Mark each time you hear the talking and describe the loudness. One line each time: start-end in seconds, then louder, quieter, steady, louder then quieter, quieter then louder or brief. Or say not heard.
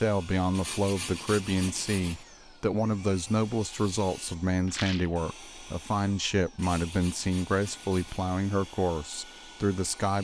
0.0-10.2 steady.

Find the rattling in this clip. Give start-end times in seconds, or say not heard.
4.7-5.2.